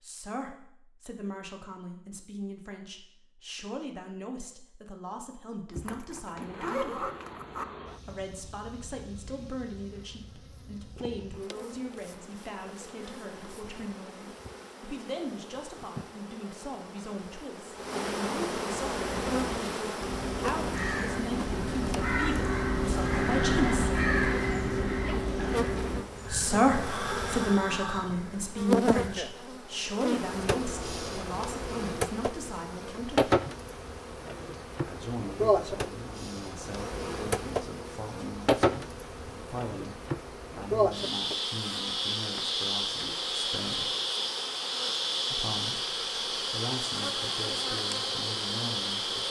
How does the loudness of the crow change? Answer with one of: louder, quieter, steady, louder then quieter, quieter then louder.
louder then quieter.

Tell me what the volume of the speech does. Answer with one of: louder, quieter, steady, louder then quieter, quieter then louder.
louder then quieter.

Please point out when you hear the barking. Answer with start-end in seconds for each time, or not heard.
not heard.